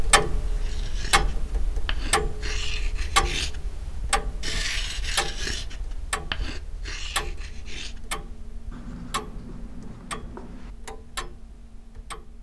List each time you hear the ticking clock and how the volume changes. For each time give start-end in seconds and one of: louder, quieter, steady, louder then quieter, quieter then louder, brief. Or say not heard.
0.0-12.3 quieter.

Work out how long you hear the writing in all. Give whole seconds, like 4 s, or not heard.
10 s.